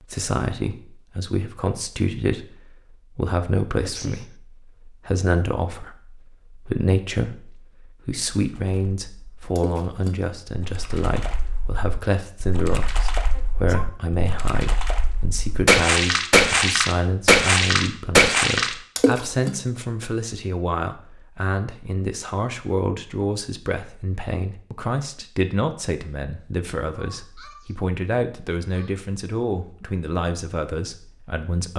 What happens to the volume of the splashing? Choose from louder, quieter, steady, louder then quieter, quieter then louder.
louder.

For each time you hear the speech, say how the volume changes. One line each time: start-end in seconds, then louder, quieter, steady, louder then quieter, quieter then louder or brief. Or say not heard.
0.0-31.7 steady.